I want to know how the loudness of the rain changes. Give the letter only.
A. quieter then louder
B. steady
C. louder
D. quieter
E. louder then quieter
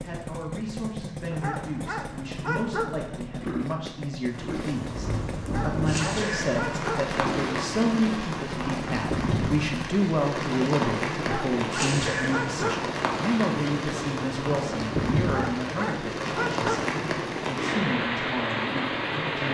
B.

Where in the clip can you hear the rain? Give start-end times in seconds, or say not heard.
4.2-19.4.